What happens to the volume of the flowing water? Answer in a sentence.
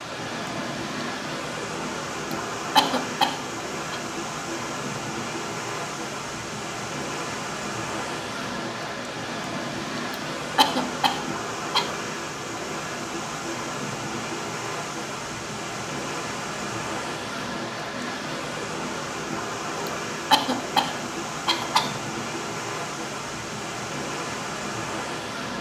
The volume of the flowing water stays about the same.